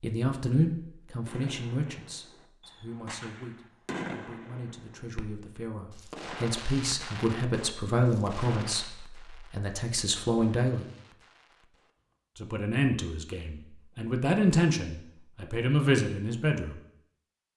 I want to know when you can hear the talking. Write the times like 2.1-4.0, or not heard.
0.0-10.8, 12.3-16.8.